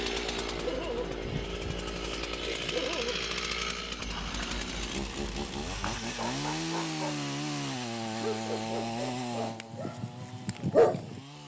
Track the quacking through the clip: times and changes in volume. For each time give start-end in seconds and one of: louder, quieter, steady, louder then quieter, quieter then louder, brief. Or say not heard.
not heard.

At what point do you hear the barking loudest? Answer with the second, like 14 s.
11 s.